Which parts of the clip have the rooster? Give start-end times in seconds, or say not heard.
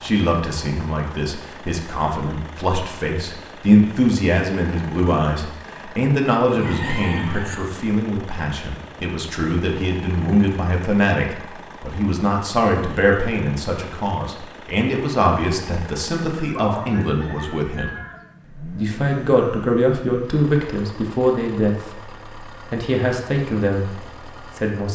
6.5-7.5, 16.4-18.2.